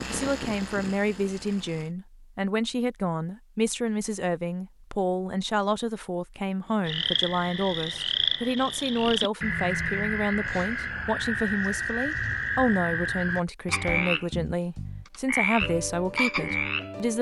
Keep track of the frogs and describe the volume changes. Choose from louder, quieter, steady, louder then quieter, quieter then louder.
steady.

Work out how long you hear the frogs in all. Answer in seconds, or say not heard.
10 s.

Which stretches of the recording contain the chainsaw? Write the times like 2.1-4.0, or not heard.
0.0-1.9.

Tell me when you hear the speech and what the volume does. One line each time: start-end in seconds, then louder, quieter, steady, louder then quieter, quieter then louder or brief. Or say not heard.
0.1-17.1 steady.